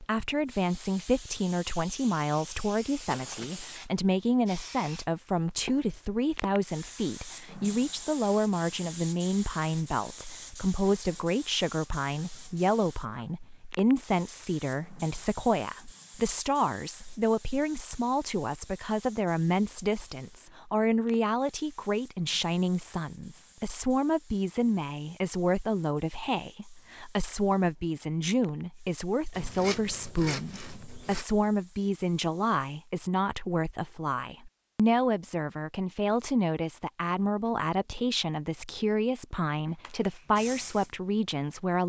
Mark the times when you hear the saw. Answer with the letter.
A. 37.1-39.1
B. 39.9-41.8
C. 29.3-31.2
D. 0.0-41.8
C.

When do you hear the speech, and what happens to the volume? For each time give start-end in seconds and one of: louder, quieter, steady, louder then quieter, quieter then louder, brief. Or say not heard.
0.0-41.8 steady.